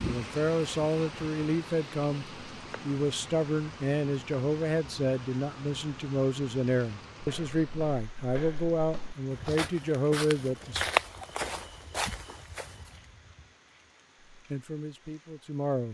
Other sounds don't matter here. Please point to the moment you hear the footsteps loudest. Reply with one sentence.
The volume of the footsteps peaks at 11 seconds.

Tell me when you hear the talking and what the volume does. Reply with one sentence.
You can hear the talking from 0.0 to 10.8 s, at a steady volume; and briefly from 14.3 to 15.8 s.